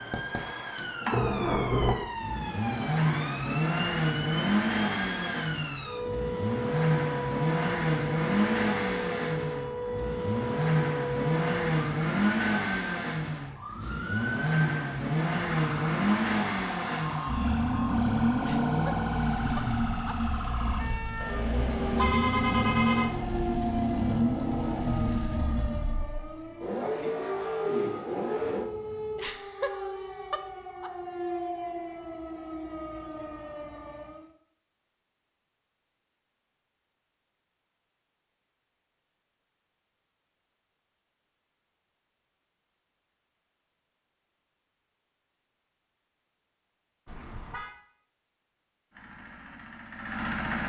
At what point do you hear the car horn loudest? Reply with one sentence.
The volume of the car horn peaks at 22 seconds.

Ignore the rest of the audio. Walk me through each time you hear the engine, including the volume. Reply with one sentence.
You can hear the engine from 0.0 to 28.7 s, at a steady volume; and briefly from 48.9 to 50.6 s.